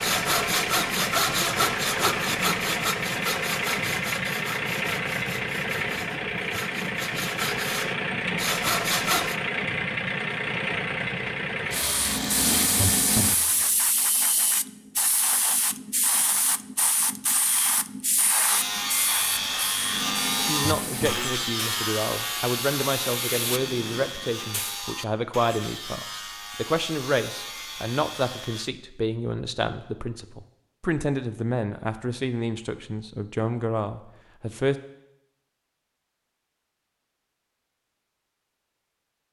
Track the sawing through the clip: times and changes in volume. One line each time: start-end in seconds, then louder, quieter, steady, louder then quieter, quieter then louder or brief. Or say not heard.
0.0-9.3 quieter then louder
18.4-28.7 quieter.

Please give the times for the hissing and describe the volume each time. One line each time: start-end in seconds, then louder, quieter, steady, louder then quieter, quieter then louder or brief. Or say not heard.
11.8-24.9 quieter.